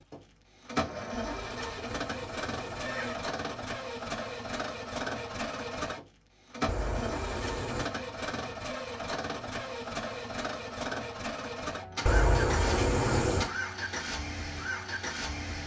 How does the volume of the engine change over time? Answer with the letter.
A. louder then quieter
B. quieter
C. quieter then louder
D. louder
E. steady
E.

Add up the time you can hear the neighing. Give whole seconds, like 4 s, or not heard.
5 s.